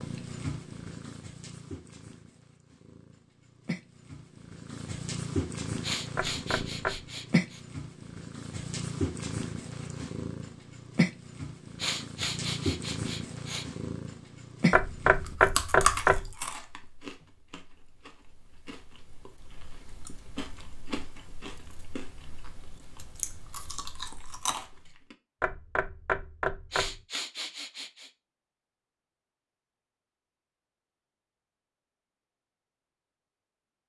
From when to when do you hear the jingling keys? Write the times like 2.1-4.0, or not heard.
not heard.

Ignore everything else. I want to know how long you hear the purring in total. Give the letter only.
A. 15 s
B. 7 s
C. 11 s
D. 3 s
A.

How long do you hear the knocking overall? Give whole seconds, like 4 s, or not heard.
4 s.